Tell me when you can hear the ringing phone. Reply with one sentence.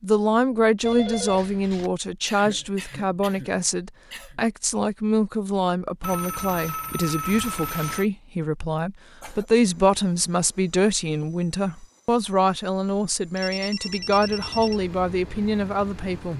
You can hear the ringing phone from 0.8 to 1.9 s, from 6.0 to 8.1 s and from 13.3 to 14.8 s.